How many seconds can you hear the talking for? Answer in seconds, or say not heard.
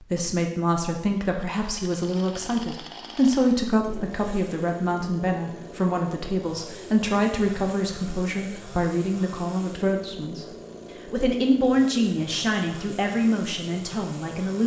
14 s.